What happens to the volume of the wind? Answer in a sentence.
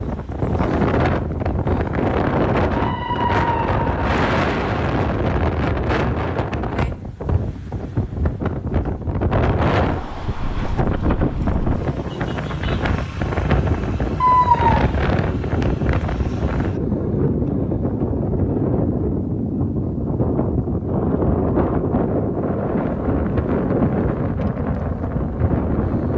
The volume of the wind stays about the same.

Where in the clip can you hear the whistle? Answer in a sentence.
The whistle can't be heard in this clip.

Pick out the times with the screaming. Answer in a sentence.
You can hear the screaming from 2.8 to 4.1 s and from 14.2 to 14.8 s.